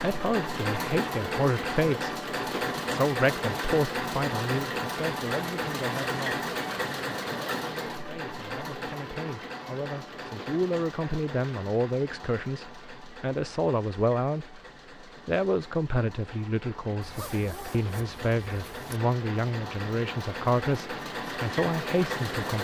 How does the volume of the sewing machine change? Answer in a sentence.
The loudness of the sewing machine goes down, then up.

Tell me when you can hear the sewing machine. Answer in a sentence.
The sewing machine can be heard from 0.0 to 22.5 s.